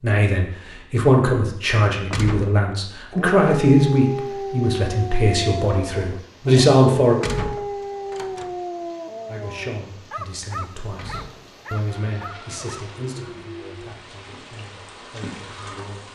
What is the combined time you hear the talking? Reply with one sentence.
The talking can be heard for 14 seconds in total.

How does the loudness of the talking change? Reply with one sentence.
The loudness of the talking goes down.